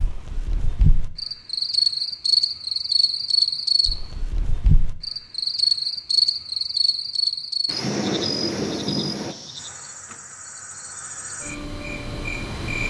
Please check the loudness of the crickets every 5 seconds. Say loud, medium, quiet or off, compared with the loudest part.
loud, loud, medium.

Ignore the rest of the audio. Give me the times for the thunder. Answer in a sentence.
The thunder can be heard from 7.7 to 9.3 s.